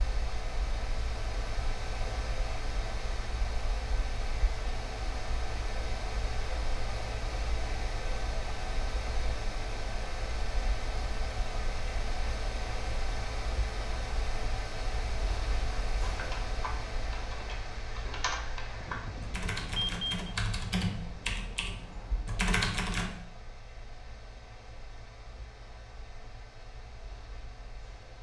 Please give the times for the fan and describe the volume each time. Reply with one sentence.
The fan can be heard from 0.0 to 28.1 s, getting quieter.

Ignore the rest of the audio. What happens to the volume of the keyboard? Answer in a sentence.
The loudness of the keyboard goes up.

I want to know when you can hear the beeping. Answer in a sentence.
You can hear the beeping from 18.8 to 20.4 s.